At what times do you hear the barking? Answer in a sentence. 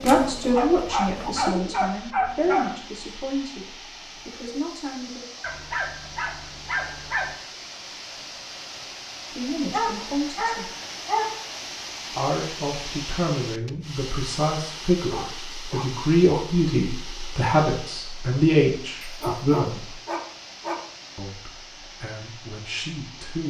The barking can be heard from 0.0 to 2.7 s, from 5.4 to 7.3 s, from 9.7 to 11.4 s, from 15.1 to 16.4 s and from 19.0 to 20.8 s.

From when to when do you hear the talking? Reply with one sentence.
You can hear the talking from 0.0 to 5.2 s, from 9.3 to 10.7 s, from 12.2 to 19.9 s and from 21.1 to 23.4 s.